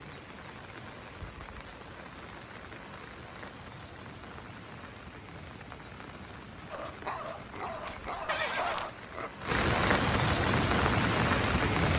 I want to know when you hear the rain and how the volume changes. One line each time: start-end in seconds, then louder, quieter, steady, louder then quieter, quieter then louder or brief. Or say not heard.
0.0-11.9 louder.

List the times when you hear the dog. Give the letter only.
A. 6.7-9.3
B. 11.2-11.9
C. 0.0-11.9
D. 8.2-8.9
A.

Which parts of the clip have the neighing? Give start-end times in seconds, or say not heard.
8.2-8.9.